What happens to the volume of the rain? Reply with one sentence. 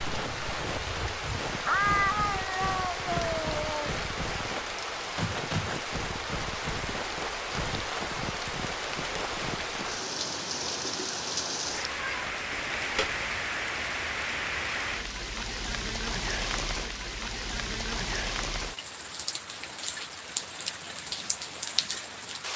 The loudness of the rain stays about the same.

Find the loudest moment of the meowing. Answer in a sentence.
The volume of the meowing peaks at 2 seconds.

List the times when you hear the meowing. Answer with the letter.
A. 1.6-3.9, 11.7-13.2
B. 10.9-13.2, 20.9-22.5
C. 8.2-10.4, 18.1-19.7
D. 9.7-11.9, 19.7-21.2
A.